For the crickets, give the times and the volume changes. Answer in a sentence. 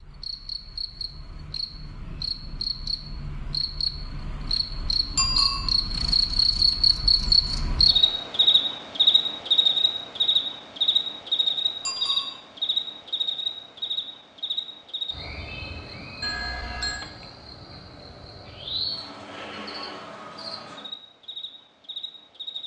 You can hear the crickets from 0.0 to 22.6 s, getting louder then quieter.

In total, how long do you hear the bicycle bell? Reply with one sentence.
The bicycle bell can be heard for 2 seconds in total.